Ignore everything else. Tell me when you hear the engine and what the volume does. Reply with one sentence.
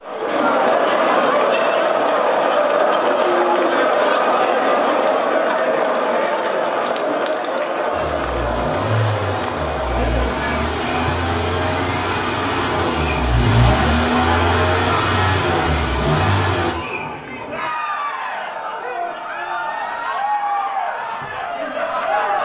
The engine can be heard from 7.9 to 16.8 s, getting louder.